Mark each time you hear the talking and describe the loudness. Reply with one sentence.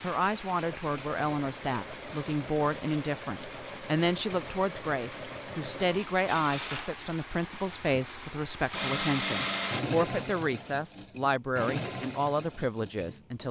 The talking can be heard from 0.0 to 13.4 s, at a steady volume.